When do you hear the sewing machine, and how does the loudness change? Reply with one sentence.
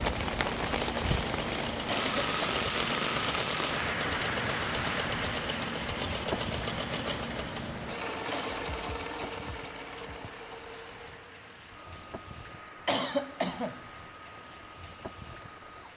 You can hear the sewing machine from 0.0 to 15.9 s, getting quieter.